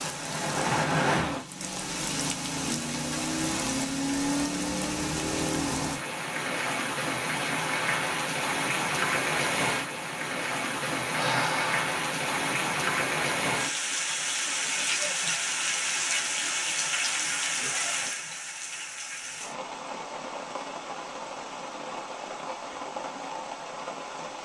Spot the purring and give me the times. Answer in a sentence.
The purring can't be heard in this clip.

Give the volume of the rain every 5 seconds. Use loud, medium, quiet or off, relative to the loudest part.
loud, loud, loud, loud, medium.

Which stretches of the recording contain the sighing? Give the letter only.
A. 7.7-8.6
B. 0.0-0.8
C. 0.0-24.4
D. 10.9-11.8
D.